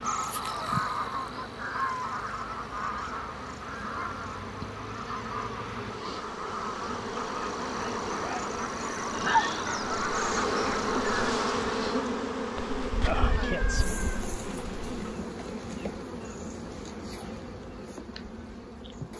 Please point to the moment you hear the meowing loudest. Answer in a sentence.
The volume of the meowing peaks at 14 seconds.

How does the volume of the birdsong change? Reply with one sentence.
The loudness of the birdsong goes down, then up.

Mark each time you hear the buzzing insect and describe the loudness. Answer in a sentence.
The buzzing insect can be heard from 0.0 to 19.1 s, getting louder then quieter.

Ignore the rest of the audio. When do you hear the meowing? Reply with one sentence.
You can hear the meowing from 12.6 to 15.2 s.